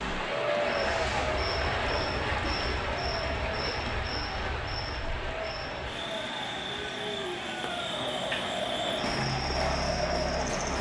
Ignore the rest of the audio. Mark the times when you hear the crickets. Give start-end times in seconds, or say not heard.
0.0-10.7.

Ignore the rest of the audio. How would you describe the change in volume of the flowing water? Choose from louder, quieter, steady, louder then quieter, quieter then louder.
quieter.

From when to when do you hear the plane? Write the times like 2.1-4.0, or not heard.
not heard.